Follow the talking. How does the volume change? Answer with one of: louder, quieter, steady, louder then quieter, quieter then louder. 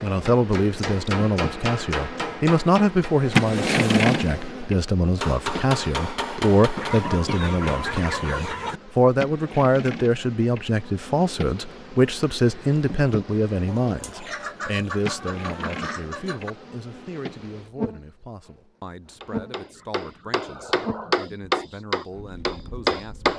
quieter.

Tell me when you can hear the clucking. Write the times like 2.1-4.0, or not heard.
6.8-8.8, 13.7-16.6.